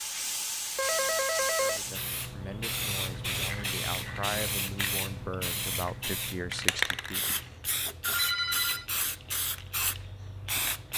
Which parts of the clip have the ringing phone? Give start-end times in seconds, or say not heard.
0.8-1.9, 8.1-8.8.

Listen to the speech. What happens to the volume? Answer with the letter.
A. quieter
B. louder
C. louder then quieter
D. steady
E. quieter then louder
B.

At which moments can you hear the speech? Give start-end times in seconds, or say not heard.
1.6-7.2.